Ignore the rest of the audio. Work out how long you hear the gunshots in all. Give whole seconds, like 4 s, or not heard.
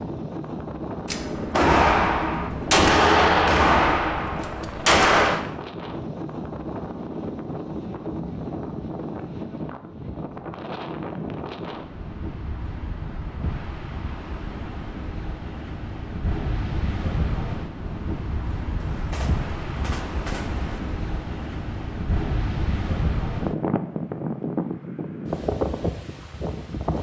6 s.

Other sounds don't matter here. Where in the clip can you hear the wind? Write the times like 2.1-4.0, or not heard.
0.0-26.9.